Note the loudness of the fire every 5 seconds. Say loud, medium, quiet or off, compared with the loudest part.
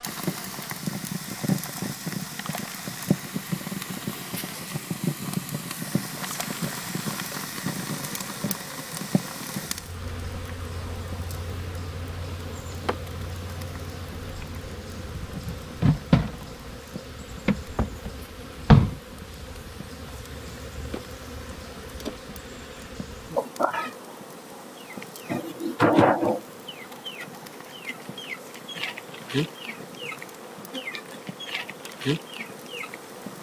loud, loud, quiet, quiet, quiet, quiet, quiet.